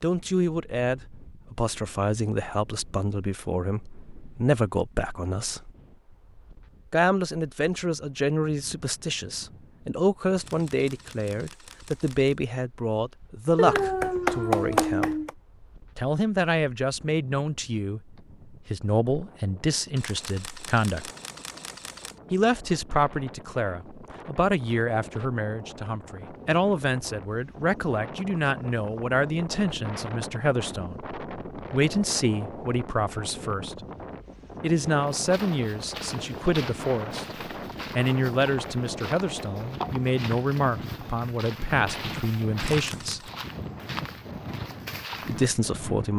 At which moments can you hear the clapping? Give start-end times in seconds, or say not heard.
13.6-15.3.